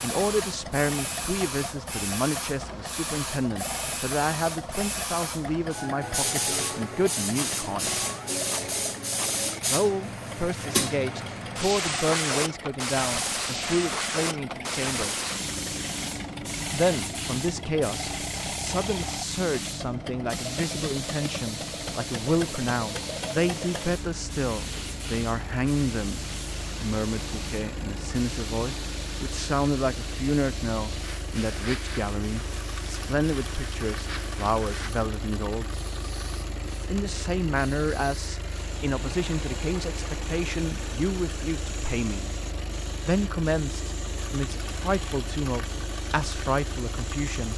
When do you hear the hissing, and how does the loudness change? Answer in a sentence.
You can hear the hissing from 0.0 to 47.5 s, getting quieter.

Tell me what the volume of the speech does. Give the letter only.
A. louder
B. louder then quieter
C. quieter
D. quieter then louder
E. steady
E.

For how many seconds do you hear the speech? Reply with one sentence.
You can hear the speech for 42 seconds altogether.